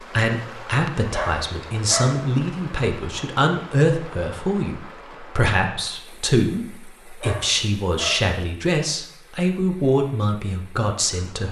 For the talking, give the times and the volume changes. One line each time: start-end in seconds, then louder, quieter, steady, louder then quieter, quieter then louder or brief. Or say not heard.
0.0-11.4 steady.